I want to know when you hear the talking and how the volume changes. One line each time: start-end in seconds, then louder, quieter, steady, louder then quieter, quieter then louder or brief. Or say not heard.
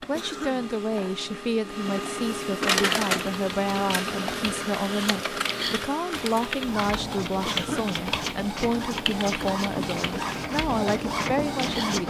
0.1-12.0 steady.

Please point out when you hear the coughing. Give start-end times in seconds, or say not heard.
0.1-0.7, 7.5-8.0.